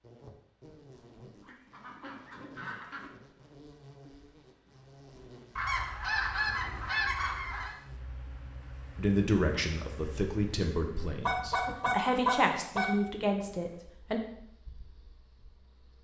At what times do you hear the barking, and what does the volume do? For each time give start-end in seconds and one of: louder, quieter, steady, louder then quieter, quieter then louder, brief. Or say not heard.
not heard.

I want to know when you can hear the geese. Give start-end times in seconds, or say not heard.
1.4-3.1, 5.5-7.8, 11.2-12.8.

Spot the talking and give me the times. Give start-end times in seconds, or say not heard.
8.9-14.2.